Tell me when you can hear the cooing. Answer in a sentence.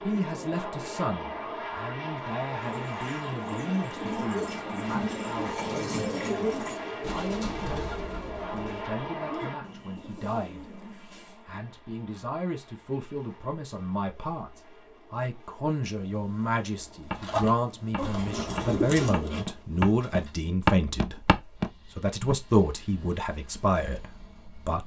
The cooing can be heard from 2.5 to 11.5 s and from 17.1 to 20.5 s.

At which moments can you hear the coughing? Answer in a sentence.
The coughing can't be heard in this clip.